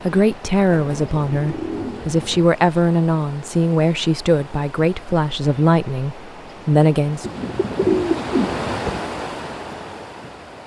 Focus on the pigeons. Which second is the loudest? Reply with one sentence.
The volume of the pigeons peaks at 8 seconds.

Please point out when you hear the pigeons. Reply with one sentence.
You can hear the pigeons from 0.7 to 2.5 s and from 7.2 to 9.0 s.